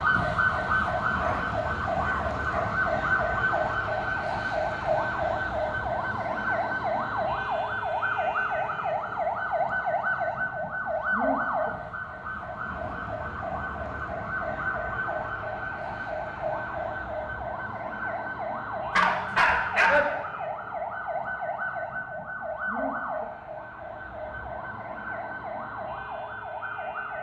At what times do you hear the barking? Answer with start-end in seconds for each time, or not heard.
1.1-2.8, 18.9-20.1.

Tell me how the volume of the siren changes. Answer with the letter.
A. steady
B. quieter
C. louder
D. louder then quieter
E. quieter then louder
B.